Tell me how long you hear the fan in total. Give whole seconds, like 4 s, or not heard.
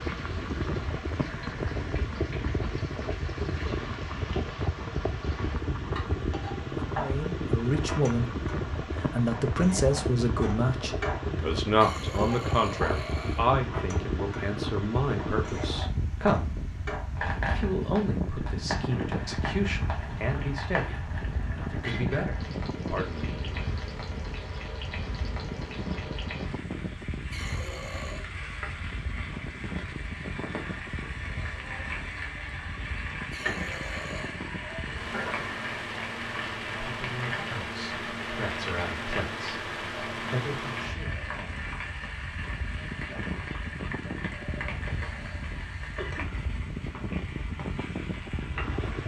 49 s.